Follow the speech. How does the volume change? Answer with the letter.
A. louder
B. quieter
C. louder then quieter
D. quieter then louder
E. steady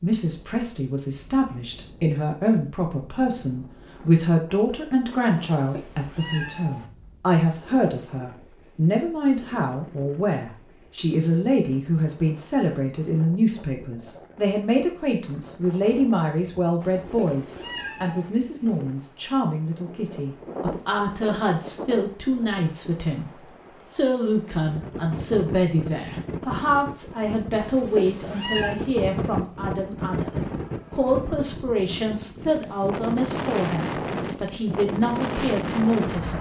E.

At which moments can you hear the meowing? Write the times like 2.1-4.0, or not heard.
5.4-6.9, 16.8-18.3, 27.6-28.8.